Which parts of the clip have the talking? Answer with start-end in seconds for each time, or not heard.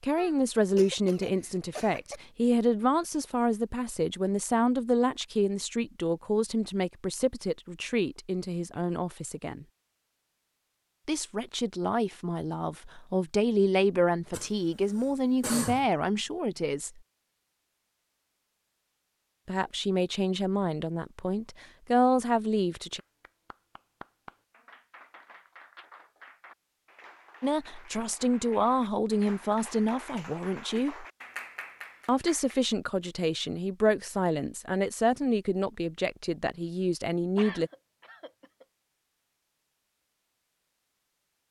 0.0-9.7, 11.1-17.0, 19.4-23.0, 27.4-31.1, 32.0-37.7.